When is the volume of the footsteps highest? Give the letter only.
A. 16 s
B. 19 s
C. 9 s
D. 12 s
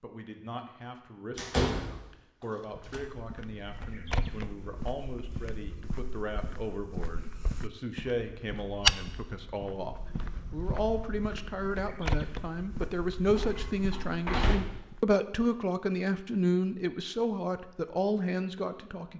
C.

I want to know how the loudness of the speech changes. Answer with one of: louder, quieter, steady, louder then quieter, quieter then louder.
louder.